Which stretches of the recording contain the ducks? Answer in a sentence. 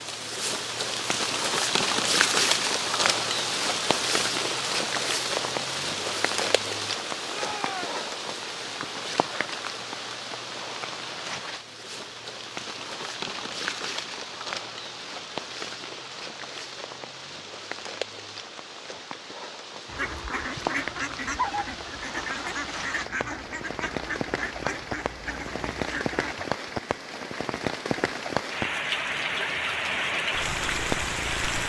You can hear the ducks from 19.9 to 26.4 s.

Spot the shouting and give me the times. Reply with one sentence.
You can hear the shouting from 7.2 to 8.0 s.